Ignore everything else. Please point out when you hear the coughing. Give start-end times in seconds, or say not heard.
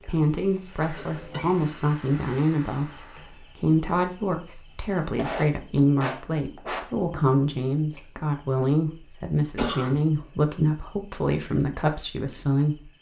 0.9-1.7, 5.2-6.8, 9.6-10.1.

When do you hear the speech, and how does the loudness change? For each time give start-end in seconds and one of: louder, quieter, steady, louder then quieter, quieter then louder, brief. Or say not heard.
0.1-12.9 steady.